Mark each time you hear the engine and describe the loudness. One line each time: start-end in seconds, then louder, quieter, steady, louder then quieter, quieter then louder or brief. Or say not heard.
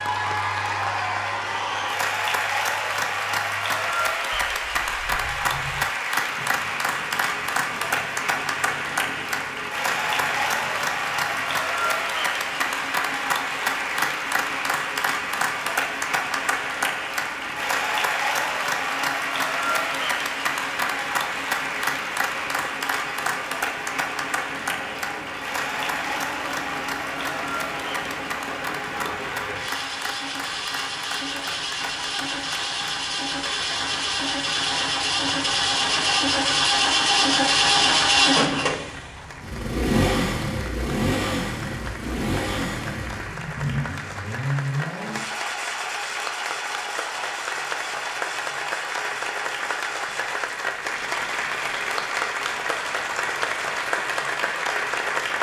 0.0-55.3 louder then quieter.